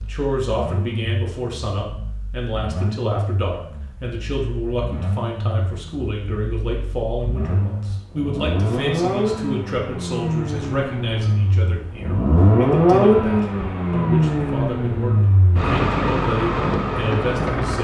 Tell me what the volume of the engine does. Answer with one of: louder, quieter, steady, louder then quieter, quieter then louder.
louder.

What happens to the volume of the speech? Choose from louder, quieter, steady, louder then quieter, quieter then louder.
steady.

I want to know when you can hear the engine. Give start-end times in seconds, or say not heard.
0.0-17.7.